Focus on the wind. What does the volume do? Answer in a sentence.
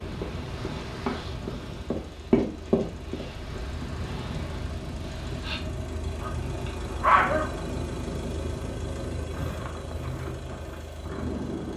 The loudness of the wind stays about the same.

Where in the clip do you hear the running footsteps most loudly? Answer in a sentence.
The loudest moment of the running footsteps is at 2 seconds.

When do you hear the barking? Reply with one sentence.
You can hear the barking from 6.2 to 7.5 s.